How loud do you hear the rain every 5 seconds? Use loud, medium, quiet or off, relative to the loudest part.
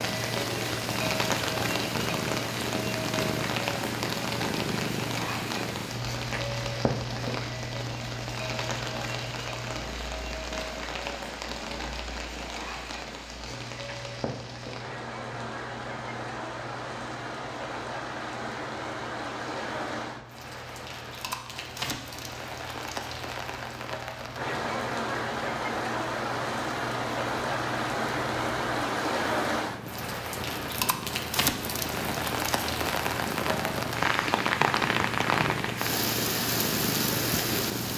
loud, medium, medium, medium, medium, loud, loud, loud.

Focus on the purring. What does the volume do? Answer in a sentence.
The volume of the purring goes down, then up.